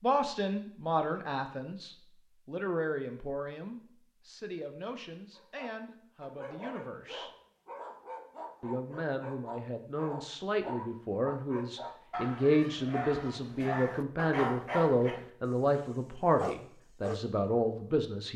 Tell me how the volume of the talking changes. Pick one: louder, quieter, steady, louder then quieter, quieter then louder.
quieter then louder.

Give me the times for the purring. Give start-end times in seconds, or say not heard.
not heard.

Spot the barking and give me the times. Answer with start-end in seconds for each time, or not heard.
5.3-17.2.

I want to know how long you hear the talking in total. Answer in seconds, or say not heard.
17 s.